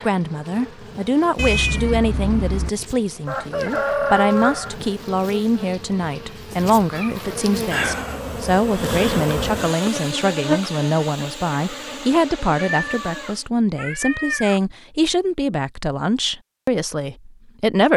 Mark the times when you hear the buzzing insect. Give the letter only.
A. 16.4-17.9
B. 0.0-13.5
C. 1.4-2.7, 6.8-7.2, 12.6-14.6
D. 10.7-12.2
B.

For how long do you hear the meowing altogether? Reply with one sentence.
The meowing can be heard for 4 seconds in total.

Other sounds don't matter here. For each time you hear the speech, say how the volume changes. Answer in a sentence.
You can hear the speech from 0.0 to 17.9 s, at a steady volume.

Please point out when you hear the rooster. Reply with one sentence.
You can hear the rooster from 3.2 to 4.8 s.